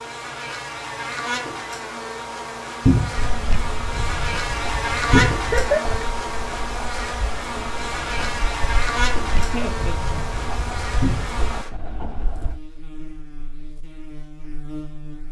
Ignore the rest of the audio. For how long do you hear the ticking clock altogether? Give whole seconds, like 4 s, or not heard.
not heard.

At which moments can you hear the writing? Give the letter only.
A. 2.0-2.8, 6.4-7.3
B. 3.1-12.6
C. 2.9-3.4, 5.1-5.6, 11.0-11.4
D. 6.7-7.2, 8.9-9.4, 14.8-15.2
B.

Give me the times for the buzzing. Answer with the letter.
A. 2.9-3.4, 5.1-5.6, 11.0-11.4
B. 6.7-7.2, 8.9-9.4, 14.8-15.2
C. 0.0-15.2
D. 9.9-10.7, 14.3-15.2
C.